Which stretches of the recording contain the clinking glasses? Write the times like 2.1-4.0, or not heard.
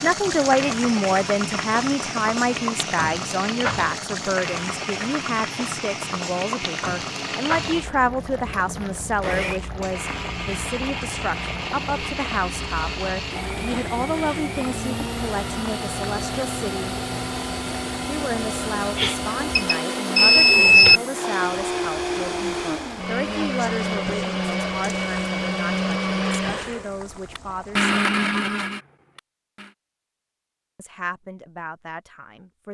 not heard.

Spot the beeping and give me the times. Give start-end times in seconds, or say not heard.
18.9-21.0.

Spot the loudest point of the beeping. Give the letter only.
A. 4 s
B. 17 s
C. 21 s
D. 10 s
C.